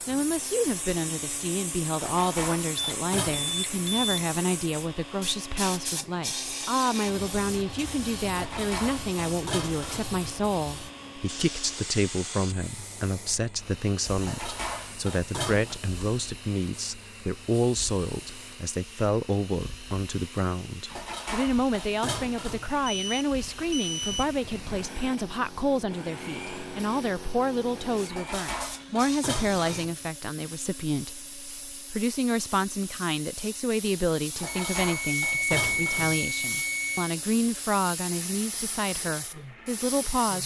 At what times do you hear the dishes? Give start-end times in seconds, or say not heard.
1.9-3.5, 8.3-10.2, 14.2-15.8, 20.9-22.8, 28.1-30.0, 34.4-36.2.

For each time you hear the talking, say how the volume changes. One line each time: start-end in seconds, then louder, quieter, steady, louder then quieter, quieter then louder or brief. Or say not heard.
0.1-40.4 steady.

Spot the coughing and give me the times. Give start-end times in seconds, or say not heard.
not heard.